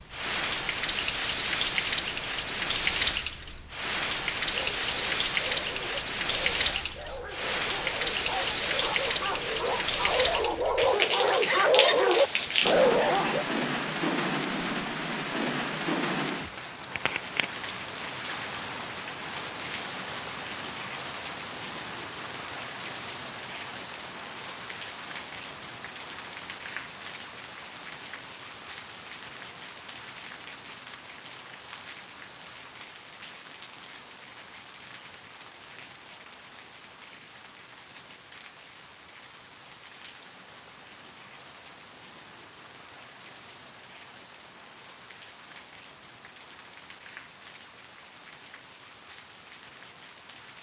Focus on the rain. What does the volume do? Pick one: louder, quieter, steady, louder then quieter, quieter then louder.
quieter.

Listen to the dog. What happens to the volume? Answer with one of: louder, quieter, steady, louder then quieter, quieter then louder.
louder.